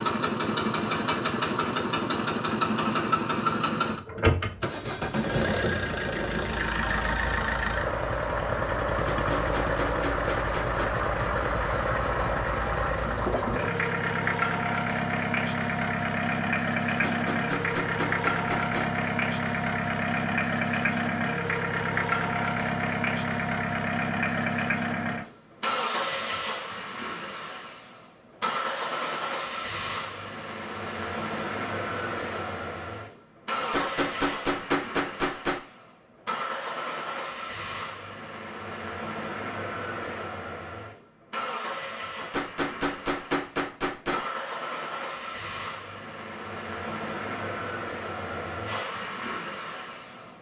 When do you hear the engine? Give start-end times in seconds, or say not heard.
0.0-50.3.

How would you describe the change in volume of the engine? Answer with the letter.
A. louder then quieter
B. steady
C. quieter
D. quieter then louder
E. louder
C.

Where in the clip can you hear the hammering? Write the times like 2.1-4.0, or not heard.
8.9-10.9, 16.9-18.9, 33.6-35.6, 42.2-44.2.